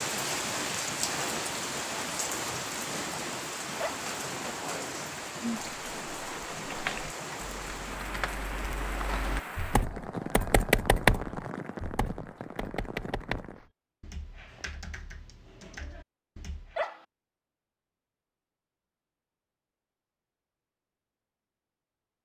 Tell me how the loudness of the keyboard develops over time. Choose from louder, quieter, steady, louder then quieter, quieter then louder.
louder then quieter.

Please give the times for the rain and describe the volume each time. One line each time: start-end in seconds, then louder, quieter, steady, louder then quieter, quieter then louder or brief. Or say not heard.
0.0-13.7 quieter.